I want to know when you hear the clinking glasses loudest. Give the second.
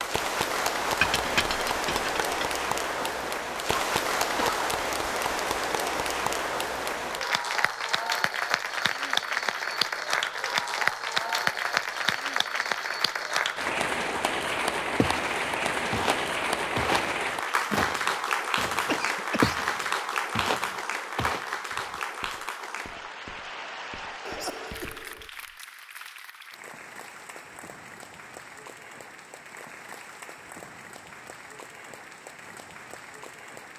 1 s.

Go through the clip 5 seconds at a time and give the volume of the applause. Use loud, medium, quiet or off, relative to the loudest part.
loud, loud, loud, loud, medium, quiet, quiet.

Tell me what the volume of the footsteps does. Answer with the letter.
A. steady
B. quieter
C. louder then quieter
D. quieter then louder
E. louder
B.